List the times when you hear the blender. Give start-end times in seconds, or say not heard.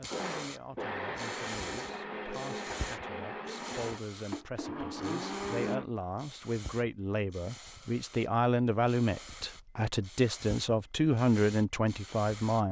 0.0-6.0.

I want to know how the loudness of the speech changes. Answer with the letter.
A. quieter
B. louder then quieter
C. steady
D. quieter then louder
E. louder
E.